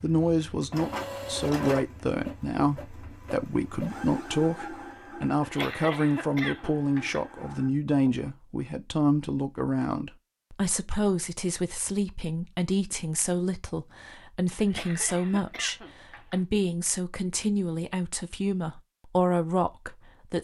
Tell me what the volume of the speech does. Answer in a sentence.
The volume of the speech stays about the same.